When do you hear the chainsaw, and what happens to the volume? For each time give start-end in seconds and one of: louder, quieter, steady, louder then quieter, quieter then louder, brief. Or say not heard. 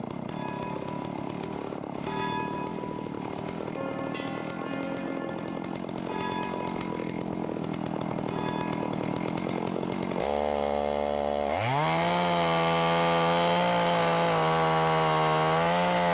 0.0-16.0 louder.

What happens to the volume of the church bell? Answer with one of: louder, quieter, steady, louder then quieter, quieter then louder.
steady.